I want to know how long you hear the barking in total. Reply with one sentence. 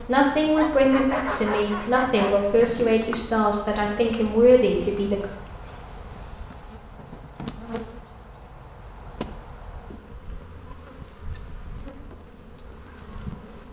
The barking can be heard for 2 seconds in total.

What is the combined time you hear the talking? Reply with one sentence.
You can hear the talking for 5 seconds altogether.